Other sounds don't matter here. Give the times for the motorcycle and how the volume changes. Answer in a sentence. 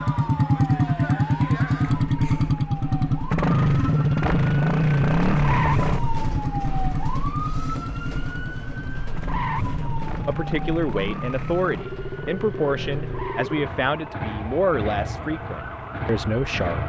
You can hear the motorcycle from 0.0 to 16.8 s, getting quieter.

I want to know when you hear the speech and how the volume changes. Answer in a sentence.
The speech can be heard from 9.8 to 16.8 s, at a steady volume.